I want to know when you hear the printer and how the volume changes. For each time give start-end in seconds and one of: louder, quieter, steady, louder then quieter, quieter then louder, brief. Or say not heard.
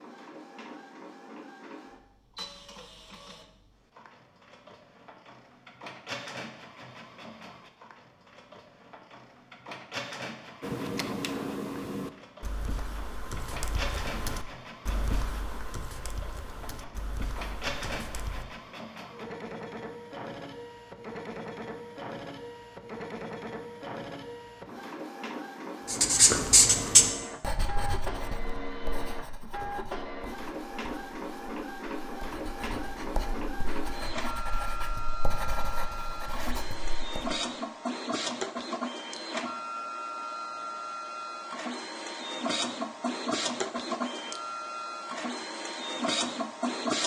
0.0-47.0 louder.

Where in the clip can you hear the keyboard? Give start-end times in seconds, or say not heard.
10.6-18.4.